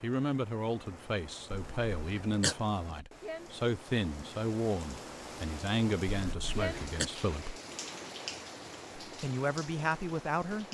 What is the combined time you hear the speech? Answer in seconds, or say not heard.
9 s.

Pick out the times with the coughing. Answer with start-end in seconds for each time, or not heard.
1.5-2.5, 6.0-7.1.